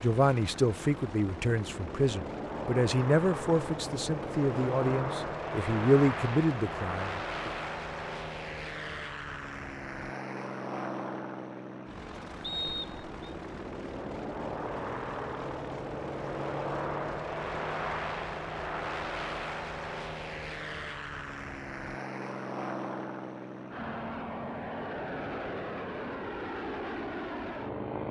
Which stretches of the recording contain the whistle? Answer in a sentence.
You can hear the whistle from 12.4 to 13.2 s.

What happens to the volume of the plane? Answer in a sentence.
The volume of the plane stays about the same.